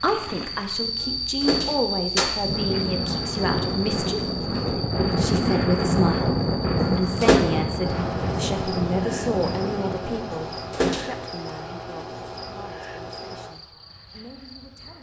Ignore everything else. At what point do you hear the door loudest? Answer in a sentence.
The loudest moment of the door is at 7 seconds.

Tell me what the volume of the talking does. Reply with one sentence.
The loudness of the talking goes down.